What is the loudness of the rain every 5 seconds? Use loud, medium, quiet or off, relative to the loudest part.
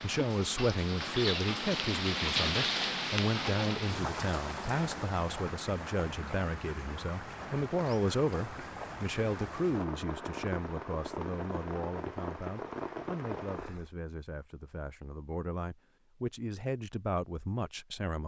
loud, medium, medium, off.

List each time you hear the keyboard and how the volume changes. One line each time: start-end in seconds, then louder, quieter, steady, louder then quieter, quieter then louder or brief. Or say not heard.
not heard.